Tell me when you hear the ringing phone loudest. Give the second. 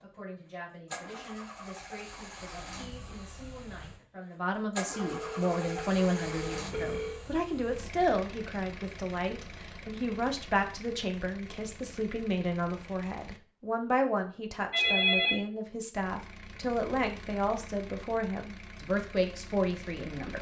15 s.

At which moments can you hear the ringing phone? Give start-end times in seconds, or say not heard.
4.9-7.2, 14.7-15.4.